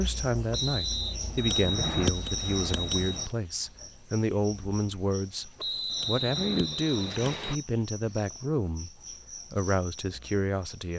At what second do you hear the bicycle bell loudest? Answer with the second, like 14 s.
2 s.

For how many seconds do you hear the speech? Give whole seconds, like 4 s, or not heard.
11 s.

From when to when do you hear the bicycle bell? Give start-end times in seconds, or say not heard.
1.4-3.3, 5.8-7.6.